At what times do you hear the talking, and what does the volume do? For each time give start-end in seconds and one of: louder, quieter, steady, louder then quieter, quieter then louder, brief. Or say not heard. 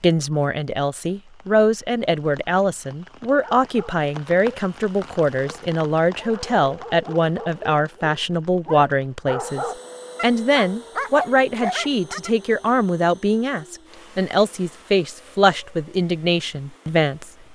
0.0-17.5 steady.